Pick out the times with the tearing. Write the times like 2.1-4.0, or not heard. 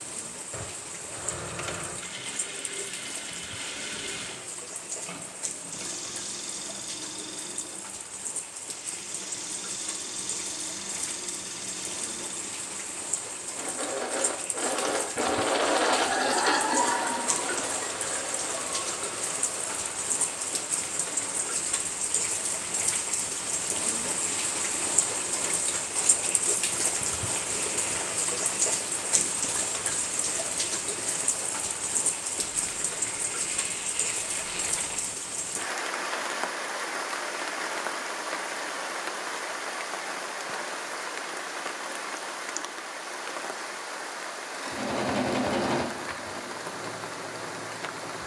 32.5-35.1.